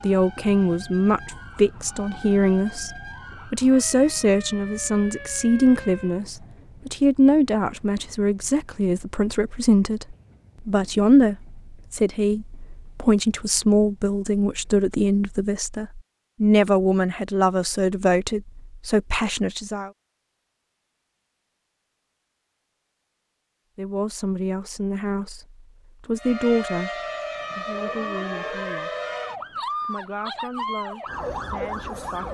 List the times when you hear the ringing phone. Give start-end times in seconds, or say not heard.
not heard.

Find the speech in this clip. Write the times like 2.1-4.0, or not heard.
0.0-19.9, 23.8-26.9, 27.6-28.9, 29.8-32.2.